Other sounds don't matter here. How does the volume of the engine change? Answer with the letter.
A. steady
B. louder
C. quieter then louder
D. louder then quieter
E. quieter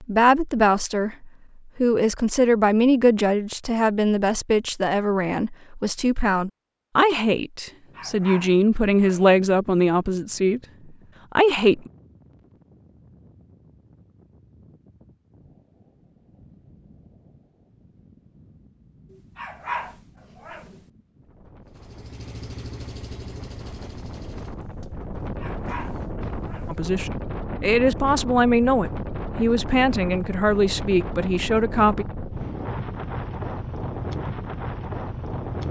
E.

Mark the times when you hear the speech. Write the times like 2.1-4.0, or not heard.
0.0-10.6, 11.3-11.9, 26.6-32.0.